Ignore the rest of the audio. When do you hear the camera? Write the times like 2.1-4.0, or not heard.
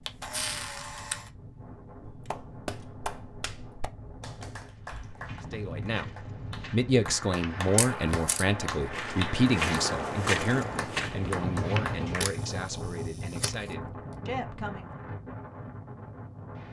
0.1-1.3, 7.8-8.4, 12.2-13.6.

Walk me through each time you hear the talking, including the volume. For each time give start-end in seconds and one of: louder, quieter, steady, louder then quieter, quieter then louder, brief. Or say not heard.
5.5-6.1 brief
6.7-15.0 quieter.